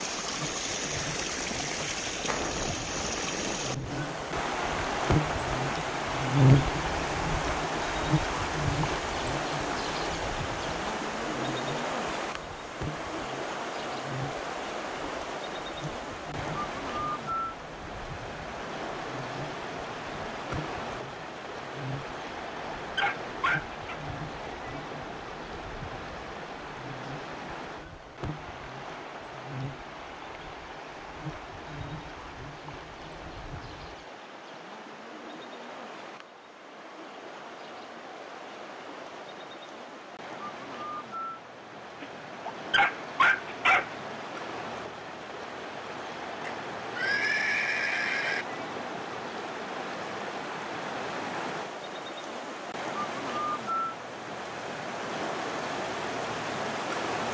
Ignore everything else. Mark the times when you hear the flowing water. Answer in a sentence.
You can hear the flowing water from 0.0 to 57.2 s.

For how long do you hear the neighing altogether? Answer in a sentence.
You can hear the neighing for 2 seconds altogether.